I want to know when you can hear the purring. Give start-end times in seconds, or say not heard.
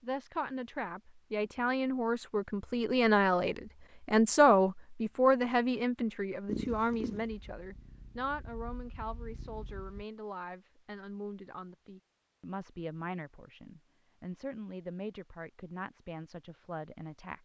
6.5-10.1.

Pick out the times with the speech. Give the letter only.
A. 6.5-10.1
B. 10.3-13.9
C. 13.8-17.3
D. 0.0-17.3
D.